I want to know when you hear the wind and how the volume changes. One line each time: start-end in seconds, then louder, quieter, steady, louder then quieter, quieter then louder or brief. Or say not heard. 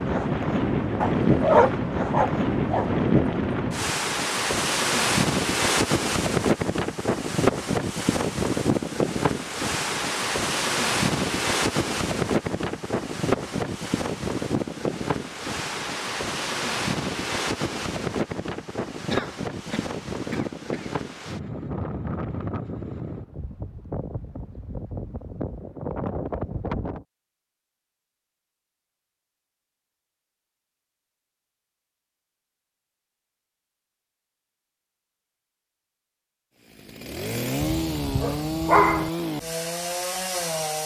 0.0-27.1 quieter.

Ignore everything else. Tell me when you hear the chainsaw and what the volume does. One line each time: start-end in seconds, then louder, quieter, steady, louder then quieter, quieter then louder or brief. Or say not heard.
36.7-40.8 steady.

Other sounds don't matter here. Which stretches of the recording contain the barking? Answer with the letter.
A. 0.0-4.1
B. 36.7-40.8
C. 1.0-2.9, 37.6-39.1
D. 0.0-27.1
C.